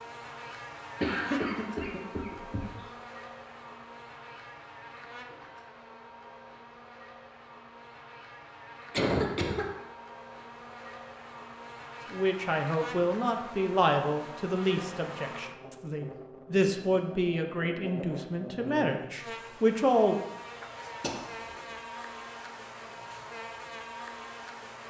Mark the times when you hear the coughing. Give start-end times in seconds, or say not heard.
1.0-2.9, 8.9-9.7, 21.0-21.6.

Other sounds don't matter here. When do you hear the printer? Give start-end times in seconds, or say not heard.
not heard.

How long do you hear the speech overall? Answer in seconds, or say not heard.
8 s.